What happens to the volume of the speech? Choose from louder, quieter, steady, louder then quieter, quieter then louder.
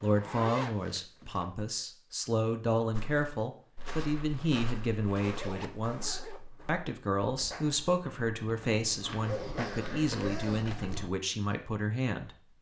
steady.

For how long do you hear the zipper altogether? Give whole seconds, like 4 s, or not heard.
5 s.